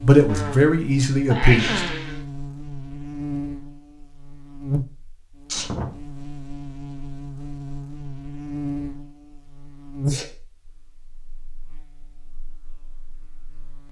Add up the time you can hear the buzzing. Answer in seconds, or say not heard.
14 s.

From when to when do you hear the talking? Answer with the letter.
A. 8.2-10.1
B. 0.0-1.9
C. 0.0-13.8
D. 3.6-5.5
B.